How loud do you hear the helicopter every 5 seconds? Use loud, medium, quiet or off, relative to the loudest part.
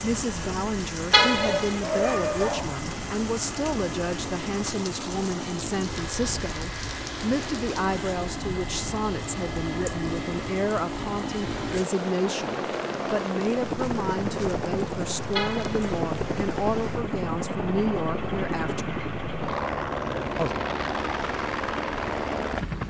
medium, medium, loud, loud, loud.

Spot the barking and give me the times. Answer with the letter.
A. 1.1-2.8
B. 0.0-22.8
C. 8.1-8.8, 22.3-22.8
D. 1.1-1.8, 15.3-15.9
A.